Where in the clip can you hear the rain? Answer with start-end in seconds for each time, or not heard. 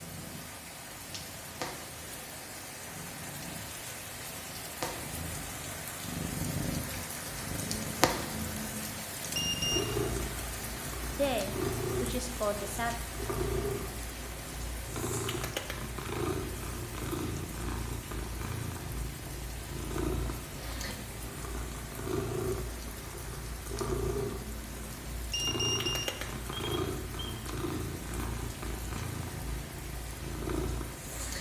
0.0-31.3.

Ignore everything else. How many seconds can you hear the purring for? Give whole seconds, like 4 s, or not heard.
31 s.